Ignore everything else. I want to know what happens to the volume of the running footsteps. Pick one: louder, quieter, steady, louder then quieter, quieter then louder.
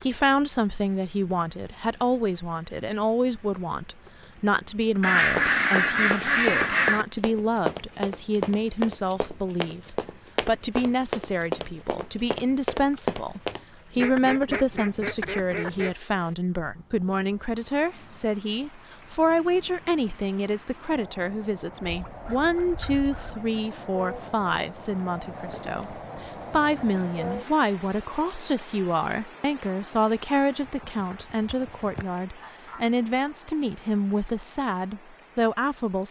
steady.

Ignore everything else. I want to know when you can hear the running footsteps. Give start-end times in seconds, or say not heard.
5.3-13.6.